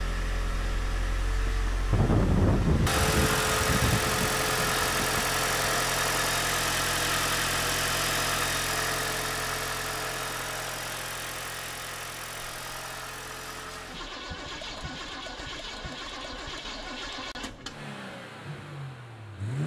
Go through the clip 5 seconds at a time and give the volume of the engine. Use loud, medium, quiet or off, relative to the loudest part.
loud, loud, medium, medium.